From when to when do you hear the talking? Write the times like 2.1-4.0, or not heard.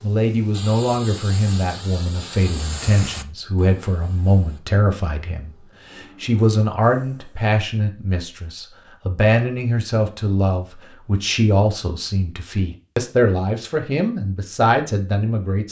0.0-15.6.